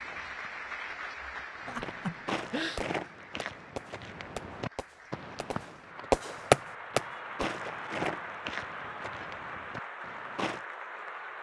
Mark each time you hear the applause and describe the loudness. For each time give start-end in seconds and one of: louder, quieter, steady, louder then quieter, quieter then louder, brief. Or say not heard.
0.0-11.3 quieter then louder.